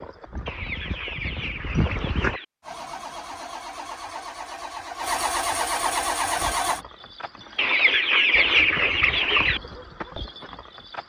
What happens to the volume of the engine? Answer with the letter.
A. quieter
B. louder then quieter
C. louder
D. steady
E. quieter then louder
C.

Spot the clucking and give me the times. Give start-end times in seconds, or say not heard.
0.5-2.5, 7.5-9.6.